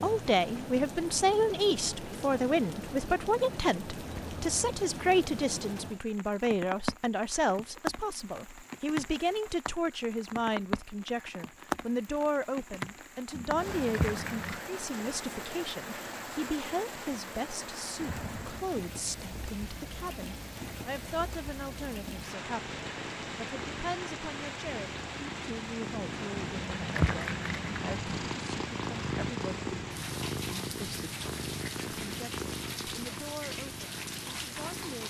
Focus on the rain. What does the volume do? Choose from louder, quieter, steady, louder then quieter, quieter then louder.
steady.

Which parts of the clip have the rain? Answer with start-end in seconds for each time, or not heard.
0.0-35.0.